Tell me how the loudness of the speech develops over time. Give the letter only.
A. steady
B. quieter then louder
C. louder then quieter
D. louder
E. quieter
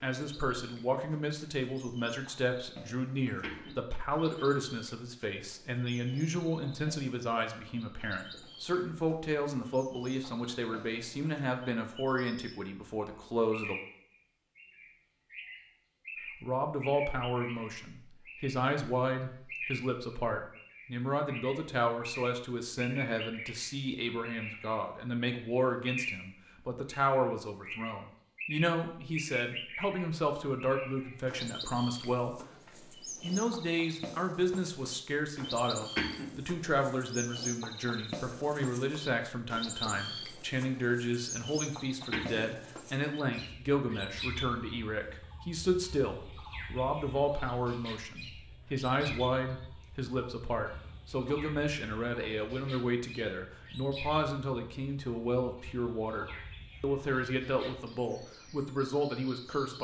A.